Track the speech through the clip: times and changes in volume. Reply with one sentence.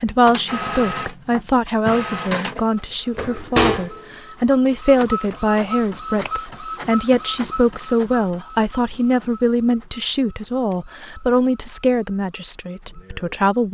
The speech can be heard from 0.0 to 13.6 s, at a steady volume.